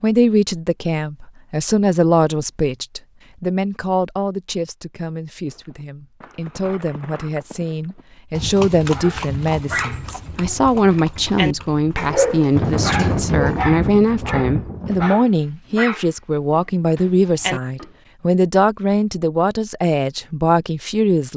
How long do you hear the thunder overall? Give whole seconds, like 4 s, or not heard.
3 s.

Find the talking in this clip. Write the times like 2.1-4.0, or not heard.
0.0-21.3.